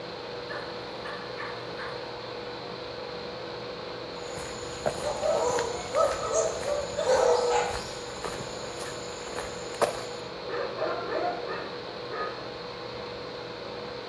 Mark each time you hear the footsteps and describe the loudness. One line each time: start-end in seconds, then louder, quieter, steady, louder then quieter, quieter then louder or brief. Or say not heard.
4.2-10.3 quieter then louder.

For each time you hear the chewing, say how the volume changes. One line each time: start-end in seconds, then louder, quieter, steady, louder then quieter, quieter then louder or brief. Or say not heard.
not heard.